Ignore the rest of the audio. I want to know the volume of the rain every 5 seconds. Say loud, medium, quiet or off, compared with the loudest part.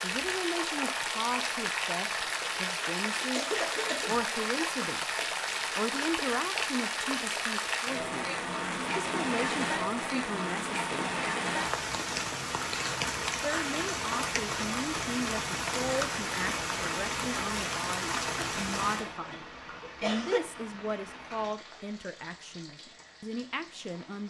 loud, loud, loud, loud, quiet.